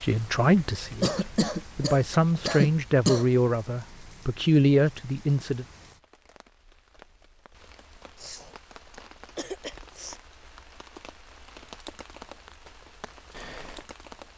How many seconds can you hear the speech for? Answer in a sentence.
The speech can be heard for 6 seconds in total.